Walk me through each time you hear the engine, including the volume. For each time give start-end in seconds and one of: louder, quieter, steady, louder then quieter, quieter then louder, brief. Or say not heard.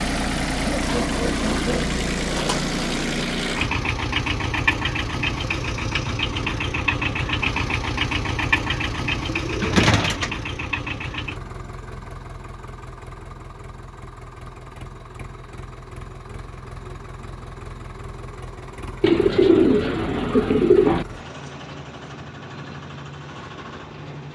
0.0-24.2 quieter.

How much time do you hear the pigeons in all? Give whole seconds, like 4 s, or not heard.
5 s.